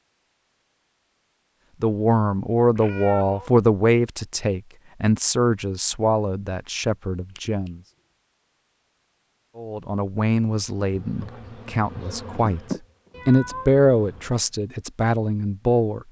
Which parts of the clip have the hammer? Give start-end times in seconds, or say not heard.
not heard.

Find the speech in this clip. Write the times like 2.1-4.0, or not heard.
1.8-7.8, 9.6-16.0.